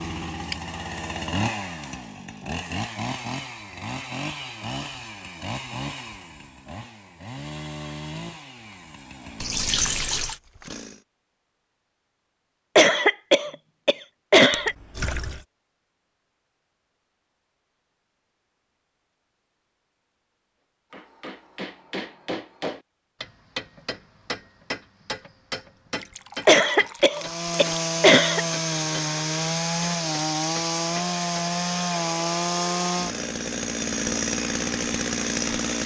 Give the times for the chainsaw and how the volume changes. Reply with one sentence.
The chainsaw can be heard from 0.0 to 11.0 s, getting quieter; and from 27.1 to 35.8 s, at a steady volume.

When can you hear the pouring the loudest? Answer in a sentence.
The volume of the pouring peaks at 10 seconds.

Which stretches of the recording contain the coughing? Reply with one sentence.
The coughing can be heard from 12.8 to 14.8 s and from 26.4 to 28.4 s.